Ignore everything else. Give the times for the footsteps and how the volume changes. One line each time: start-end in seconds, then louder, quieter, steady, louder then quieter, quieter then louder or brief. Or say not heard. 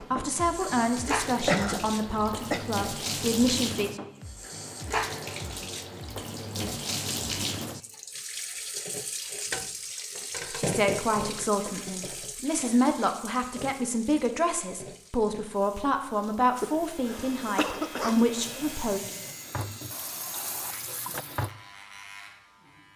not heard.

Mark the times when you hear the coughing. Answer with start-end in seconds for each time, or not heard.
1.4-2.6, 11.7-12.9, 16.6-18.2.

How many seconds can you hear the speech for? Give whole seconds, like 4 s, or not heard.
12 s.